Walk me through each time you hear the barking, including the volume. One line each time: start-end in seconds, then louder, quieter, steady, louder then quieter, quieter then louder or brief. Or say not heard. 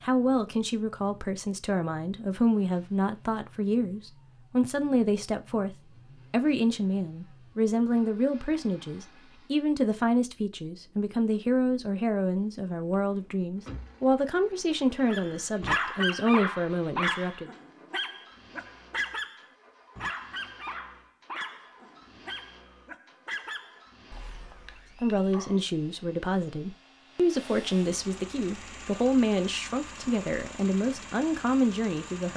15.1-25.6 quieter.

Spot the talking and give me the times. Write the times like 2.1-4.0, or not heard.
0.0-17.5, 25.0-32.3.